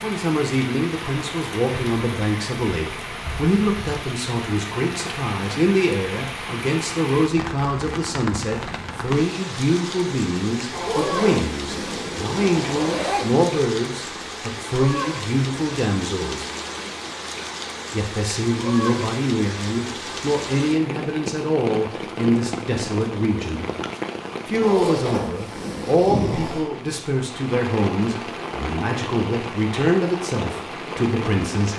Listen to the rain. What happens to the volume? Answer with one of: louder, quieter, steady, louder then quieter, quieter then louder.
steady.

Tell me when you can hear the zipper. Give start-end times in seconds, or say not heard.
10.7-13.4, 24.6-26.6.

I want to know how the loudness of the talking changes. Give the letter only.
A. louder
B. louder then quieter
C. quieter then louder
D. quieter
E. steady
E.